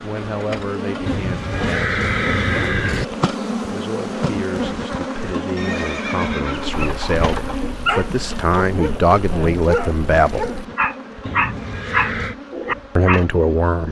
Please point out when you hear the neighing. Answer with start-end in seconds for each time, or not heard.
1.1-3.0, 5.5-7.6, 11.2-12.3.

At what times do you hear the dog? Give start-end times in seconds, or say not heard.
6.6-13.2.